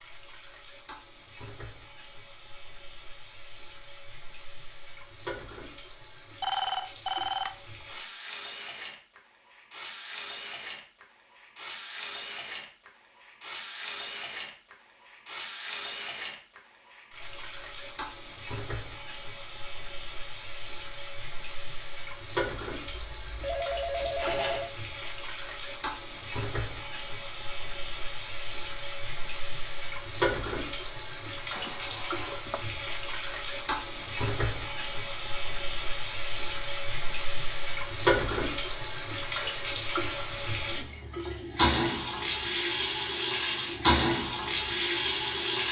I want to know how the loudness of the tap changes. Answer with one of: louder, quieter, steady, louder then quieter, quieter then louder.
louder.